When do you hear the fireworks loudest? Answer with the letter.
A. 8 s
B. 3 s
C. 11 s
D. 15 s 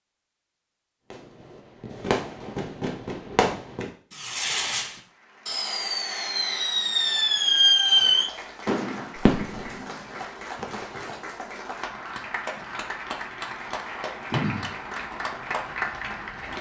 A.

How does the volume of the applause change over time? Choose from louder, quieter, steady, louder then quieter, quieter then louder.
louder.